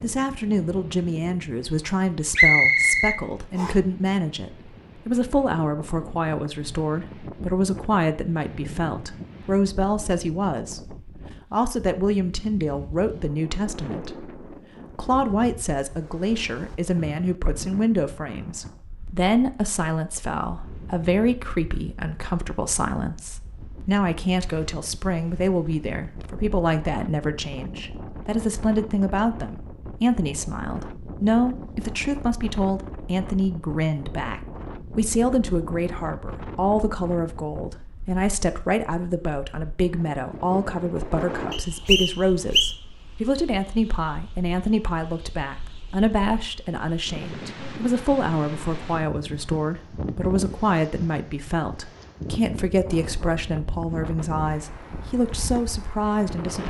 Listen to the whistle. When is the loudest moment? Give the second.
3 s.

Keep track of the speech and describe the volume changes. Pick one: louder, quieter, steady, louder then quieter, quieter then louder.
steady.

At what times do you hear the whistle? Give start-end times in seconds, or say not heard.
2.4-3.8, 41.5-42.8.